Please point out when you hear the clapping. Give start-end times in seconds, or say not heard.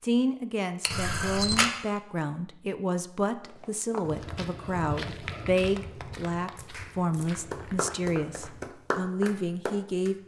5.8-10.2.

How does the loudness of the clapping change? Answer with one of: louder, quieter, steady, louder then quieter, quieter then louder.
louder.